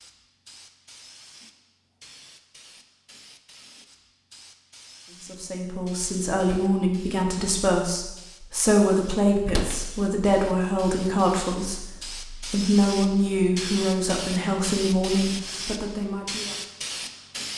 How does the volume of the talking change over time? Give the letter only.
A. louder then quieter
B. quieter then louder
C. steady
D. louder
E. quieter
C.